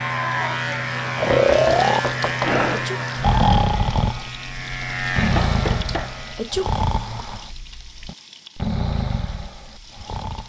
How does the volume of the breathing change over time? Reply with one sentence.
The loudness of the breathing goes down.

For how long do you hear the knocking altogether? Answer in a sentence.
You can hear the knocking for 2 seconds altogether.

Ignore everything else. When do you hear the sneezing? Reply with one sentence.
You can hear the sneezing from 2.2 to 3.0 s and from 5.8 to 6.7 s.